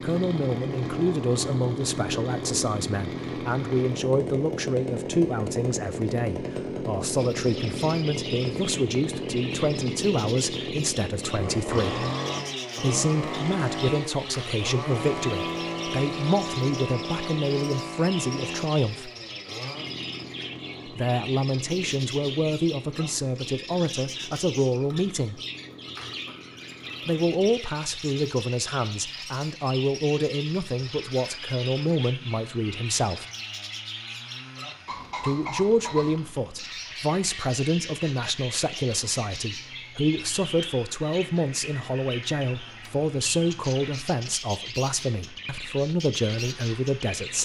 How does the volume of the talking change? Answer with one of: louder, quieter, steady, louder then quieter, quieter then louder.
steady.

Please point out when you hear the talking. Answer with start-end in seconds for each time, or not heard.
0.0-12.1, 12.8-19.1, 20.9-25.4, 27.1-33.2, 35.2-47.4.